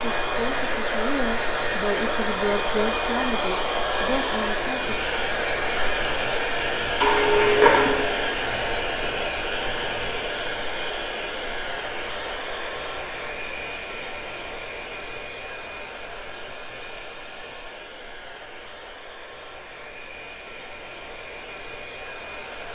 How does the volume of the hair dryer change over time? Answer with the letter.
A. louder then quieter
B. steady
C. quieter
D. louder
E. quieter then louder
C.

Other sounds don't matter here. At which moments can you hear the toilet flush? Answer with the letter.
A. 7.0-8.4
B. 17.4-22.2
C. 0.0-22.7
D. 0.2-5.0
A.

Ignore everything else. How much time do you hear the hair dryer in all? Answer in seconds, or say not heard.
23 s.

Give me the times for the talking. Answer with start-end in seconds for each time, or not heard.
0.2-5.0.